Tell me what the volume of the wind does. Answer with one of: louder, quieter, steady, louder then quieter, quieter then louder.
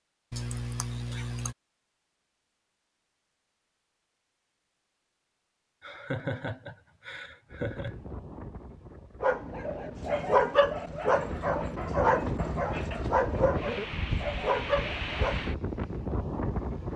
louder.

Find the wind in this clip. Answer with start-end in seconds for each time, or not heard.
7.5-16.9.